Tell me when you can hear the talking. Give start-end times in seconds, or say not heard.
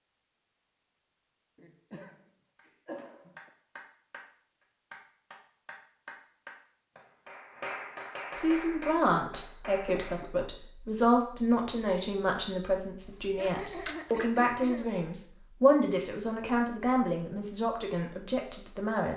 8.3-19.1.